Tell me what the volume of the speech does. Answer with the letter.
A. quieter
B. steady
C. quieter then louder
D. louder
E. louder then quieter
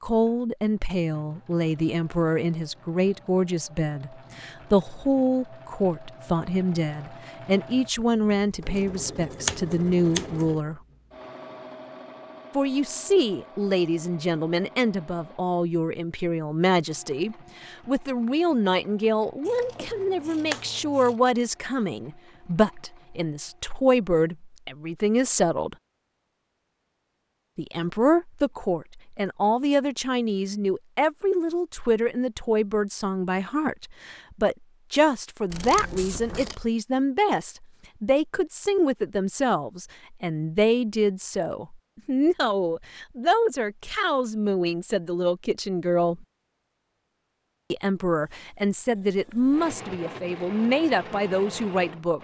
B.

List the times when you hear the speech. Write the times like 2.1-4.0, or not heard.
0.0-10.8, 12.6-25.8, 27.6-46.2, 47.7-52.1.